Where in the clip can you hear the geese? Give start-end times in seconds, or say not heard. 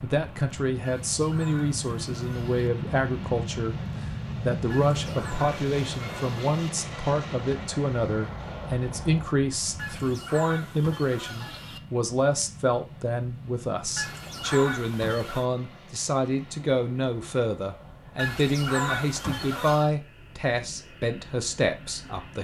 0.8-2.7, 4.7-6.6, 9.8-11.8, 13.9-15.4, 18.1-19.9.